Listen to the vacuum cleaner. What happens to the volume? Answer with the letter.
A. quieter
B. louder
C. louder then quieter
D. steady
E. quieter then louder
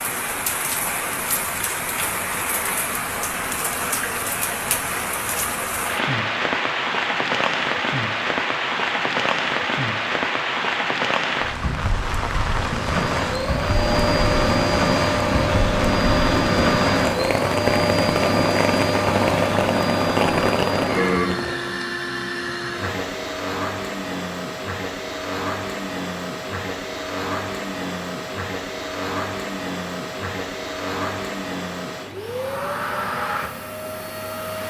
A.